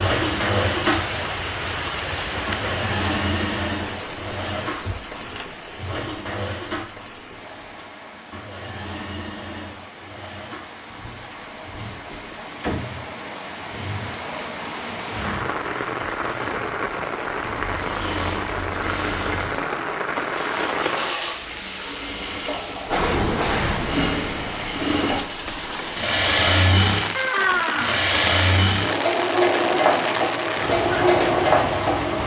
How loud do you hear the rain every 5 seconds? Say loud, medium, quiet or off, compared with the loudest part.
loud, quiet, medium, loud, loud, loud, loud.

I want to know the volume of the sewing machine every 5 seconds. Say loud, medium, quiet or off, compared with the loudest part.
medium, quiet, quiet, quiet, medium, loud, loud.